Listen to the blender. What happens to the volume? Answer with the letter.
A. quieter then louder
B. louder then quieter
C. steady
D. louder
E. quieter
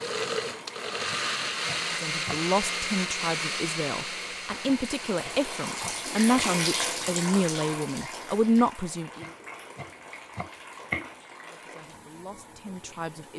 E.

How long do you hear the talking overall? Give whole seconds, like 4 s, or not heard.
9 s.